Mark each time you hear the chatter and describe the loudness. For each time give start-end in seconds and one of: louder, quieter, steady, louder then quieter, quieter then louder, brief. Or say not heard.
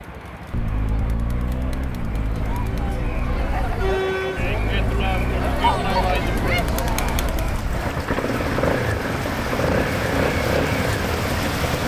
0.0-7.7 louder.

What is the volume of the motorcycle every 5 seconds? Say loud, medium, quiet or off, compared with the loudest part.
medium, loud, loud.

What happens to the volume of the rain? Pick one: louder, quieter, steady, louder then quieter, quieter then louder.
louder.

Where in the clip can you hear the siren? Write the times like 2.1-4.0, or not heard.
not heard.